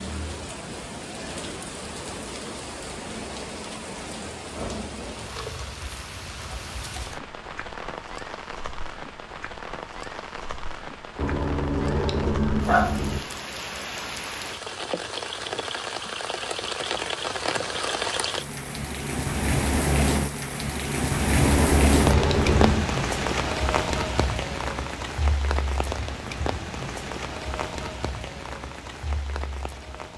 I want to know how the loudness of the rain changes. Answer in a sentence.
The loudness of the rain goes up, then down.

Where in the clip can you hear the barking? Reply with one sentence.
The barking can be heard from 11.2 to 13.2 s and from 21.4 to 22.9 s.